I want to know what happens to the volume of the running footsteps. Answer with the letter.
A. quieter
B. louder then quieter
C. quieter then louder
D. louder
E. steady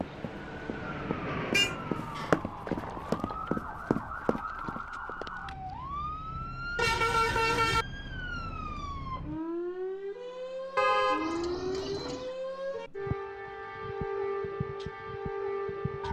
B.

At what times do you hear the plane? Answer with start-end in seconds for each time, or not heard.
0.0-2.2.